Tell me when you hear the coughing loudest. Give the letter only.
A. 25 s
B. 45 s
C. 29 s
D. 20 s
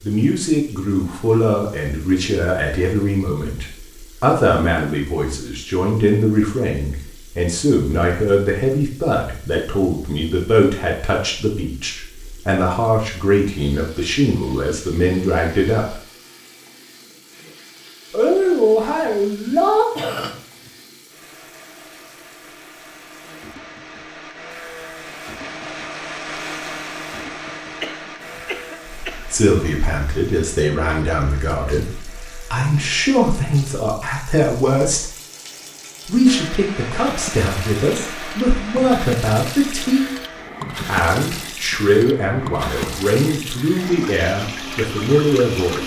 D.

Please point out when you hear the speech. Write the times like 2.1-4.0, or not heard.
0.0-16.0, 18.1-19.9, 29.1-35.1, 36.0-40.0, 40.9-45.8.